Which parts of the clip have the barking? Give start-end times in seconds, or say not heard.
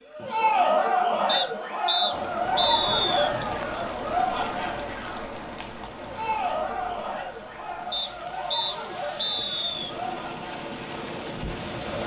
not heard.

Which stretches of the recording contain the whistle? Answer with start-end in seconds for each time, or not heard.
1.2-3.3, 7.9-9.7.